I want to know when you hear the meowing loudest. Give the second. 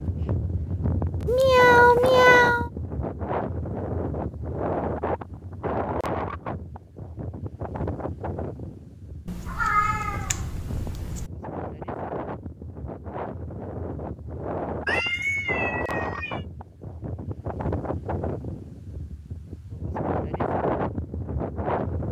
2 s.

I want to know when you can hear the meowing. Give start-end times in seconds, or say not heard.
1.2-2.7, 9.2-11.3, 14.8-16.4.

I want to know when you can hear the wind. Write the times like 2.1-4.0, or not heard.
0.0-22.0.